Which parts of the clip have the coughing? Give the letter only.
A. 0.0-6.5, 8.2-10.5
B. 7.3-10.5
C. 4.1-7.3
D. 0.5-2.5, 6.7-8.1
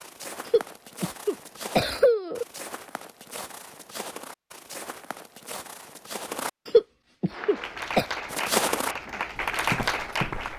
D.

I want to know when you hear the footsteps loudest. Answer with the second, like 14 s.
9 s.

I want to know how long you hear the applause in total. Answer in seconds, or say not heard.
3 s.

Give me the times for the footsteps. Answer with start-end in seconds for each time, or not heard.
0.0-6.5, 8.2-10.5.